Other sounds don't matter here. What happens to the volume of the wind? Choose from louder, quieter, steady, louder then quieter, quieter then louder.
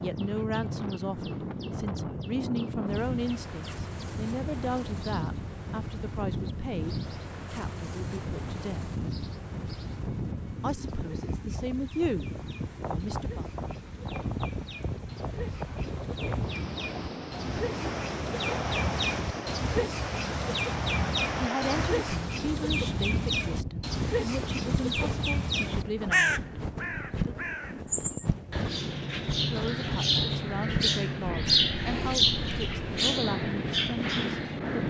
steady.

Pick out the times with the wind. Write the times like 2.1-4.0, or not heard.
0.0-34.8.